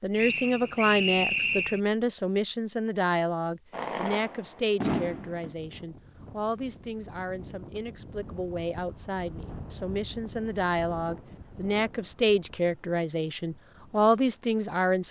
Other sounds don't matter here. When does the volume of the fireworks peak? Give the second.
5 s.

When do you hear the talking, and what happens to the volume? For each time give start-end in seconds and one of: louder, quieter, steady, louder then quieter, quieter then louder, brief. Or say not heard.
0.0-15.0 quieter then louder.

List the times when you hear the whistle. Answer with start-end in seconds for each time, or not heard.
0.1-1.8.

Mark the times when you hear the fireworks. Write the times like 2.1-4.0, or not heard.
3.7-5.5.